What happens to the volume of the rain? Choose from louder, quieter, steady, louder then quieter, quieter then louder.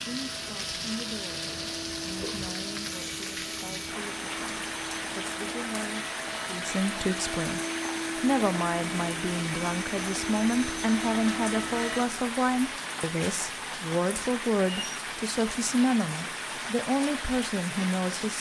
steady.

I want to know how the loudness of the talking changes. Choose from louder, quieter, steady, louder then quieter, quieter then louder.
louder.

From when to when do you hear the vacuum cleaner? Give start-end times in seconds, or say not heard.
0.0-12.1.